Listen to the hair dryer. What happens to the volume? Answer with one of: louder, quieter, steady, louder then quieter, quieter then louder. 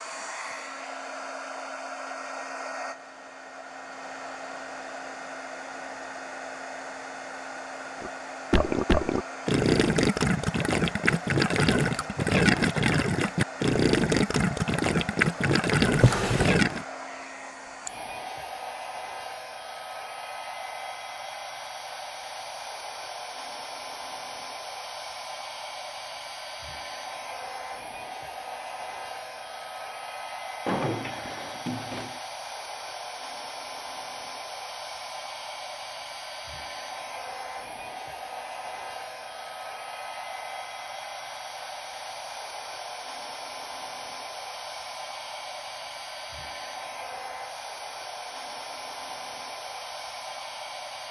steady.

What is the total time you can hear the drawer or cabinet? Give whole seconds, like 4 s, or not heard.
2 s.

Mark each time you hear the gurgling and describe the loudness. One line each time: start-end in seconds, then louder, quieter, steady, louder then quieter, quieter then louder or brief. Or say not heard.
8.0-16.9 steady.